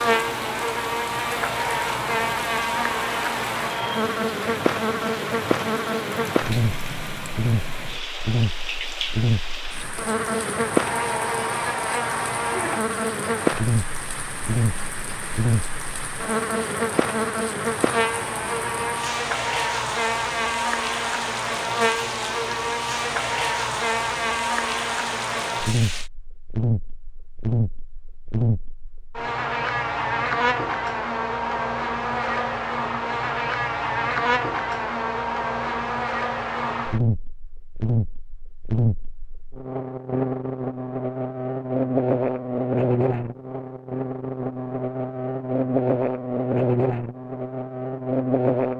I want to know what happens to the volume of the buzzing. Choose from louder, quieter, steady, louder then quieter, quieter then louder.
steady.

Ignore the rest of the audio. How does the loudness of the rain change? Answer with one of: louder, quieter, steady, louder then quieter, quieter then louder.
steady.